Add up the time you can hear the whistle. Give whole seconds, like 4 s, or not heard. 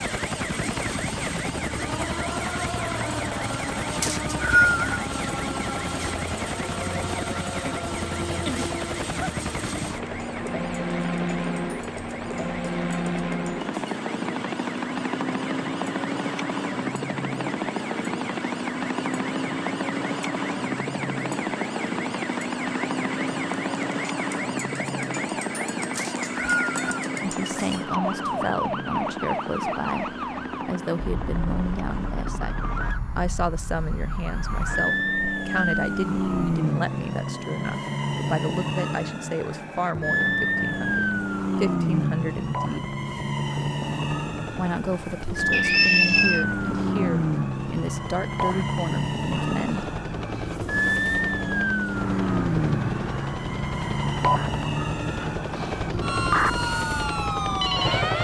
3 s.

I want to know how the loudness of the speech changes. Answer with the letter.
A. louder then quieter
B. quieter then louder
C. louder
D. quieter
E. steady
E.